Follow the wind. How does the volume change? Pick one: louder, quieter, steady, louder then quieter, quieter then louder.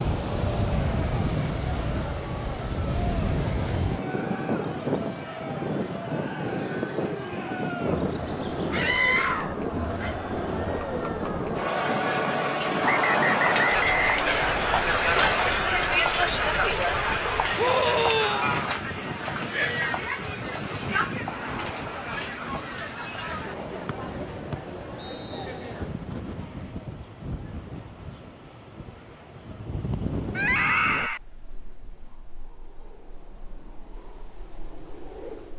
quieter.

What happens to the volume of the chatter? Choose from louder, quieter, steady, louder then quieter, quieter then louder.
louder then quieter.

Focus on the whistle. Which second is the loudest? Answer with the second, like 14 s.
14 s.